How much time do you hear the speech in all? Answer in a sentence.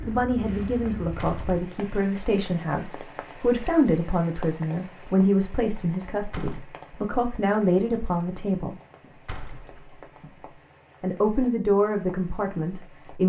The speech can be heard for 11 seconds in total.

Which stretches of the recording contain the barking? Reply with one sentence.
The barking can't be heard in this clip.